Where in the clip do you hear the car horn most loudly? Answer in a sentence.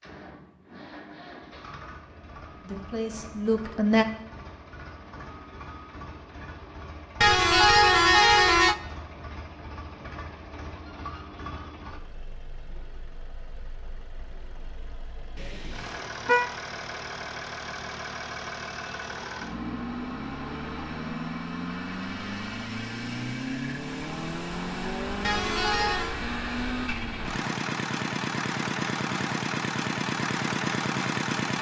The volume of the car horn peaks at 8 seconds.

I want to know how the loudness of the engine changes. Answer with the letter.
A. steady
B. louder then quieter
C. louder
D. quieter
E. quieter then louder
C.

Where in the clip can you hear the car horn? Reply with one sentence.
The car horn can be heard from 7.2 to 8.8 s, from 15.3 to 16.5 s and from 25.2 to 26.1 s.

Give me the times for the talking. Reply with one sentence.
The talking can be heard from 2.6 to 4.0 s.